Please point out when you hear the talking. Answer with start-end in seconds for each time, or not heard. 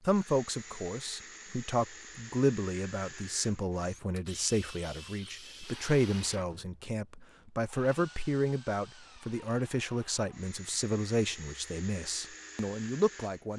0.1-13.5.